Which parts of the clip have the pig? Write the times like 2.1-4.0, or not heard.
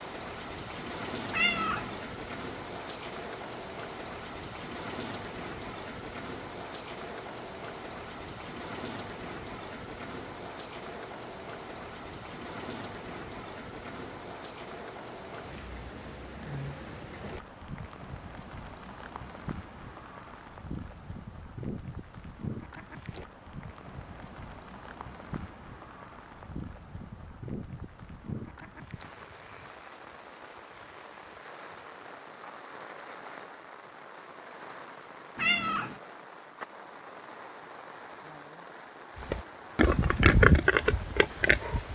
39.1-41.9.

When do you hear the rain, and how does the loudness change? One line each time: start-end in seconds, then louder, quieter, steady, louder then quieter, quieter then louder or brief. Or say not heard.
0.0-41.9 quieter.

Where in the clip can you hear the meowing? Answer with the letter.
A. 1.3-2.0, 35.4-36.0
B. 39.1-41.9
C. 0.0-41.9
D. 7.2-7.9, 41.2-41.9
A.